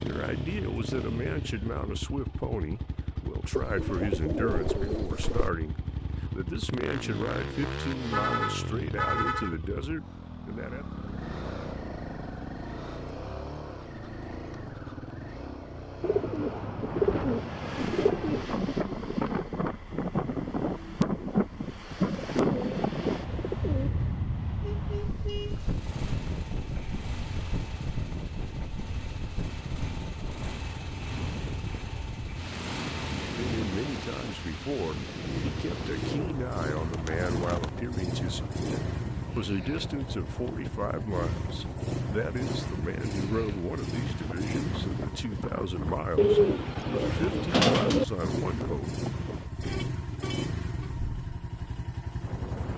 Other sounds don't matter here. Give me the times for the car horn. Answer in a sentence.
The car horn can be heard from 8.1 to 9.6 s, from 24.6 to 25.6 s and from 49.6 to 51.0 s.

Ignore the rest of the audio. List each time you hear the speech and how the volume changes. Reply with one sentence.
The speech can be heard from 0.0 to 10.8 s, at a steady volume; and from 33.4 to 49.0 s, at a steady volume.